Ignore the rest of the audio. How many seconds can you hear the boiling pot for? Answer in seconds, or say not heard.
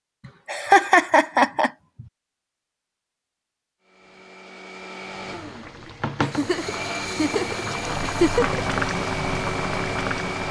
5 s.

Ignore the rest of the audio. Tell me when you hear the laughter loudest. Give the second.
1 s.